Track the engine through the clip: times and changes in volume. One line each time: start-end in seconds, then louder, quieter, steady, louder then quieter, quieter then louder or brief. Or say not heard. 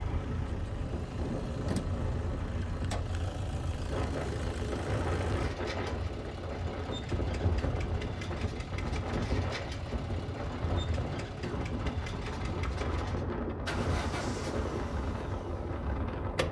0.0-16.4 steady.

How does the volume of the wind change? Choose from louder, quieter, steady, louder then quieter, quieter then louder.
steady.